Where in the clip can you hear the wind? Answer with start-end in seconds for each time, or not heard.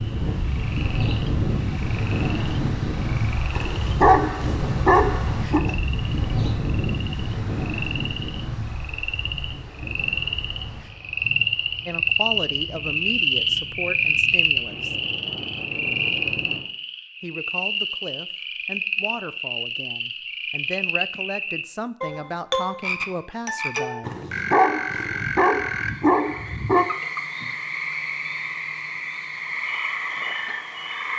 0.0-16.6.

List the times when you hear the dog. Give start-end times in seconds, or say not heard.
3.5-5.6, 24.0-26.9.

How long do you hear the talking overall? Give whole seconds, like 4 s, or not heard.
10 s.